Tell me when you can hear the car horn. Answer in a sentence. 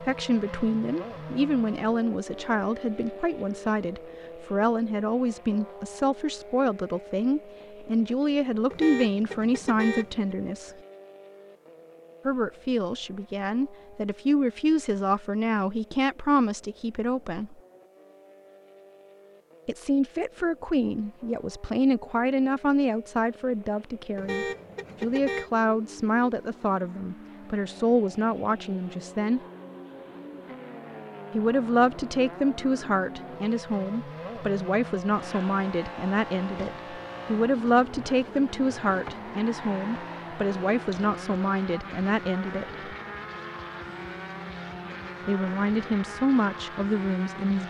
You can hear the car horn from 8.7 to 10.2 s and from 24.1 to 25.5 s.